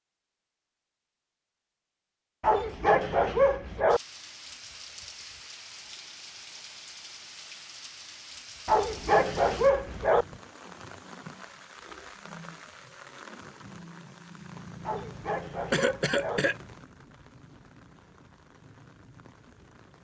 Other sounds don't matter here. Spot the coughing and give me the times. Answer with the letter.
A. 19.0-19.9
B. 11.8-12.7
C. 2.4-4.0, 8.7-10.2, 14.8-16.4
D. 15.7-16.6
D.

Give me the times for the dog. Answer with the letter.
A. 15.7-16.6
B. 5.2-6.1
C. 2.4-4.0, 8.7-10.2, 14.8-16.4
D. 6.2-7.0
C.